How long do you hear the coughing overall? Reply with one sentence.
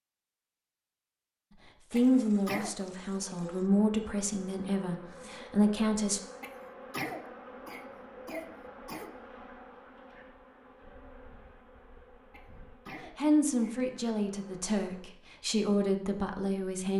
You can hear the coughing for 5 seconds altogether.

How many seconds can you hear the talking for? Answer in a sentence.
You can hear the talking for 8 seconds altogether.